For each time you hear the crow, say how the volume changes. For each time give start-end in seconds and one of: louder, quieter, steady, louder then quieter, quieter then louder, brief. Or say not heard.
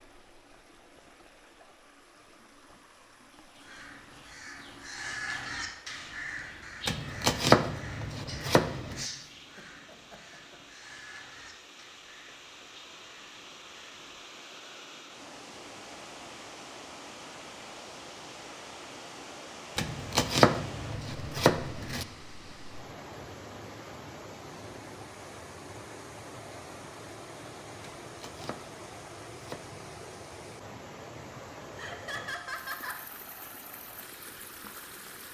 3.5-14.2 quieter.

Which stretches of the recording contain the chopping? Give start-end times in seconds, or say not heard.
6.8-9.1, 19.8-22.1, 27.8-29.8.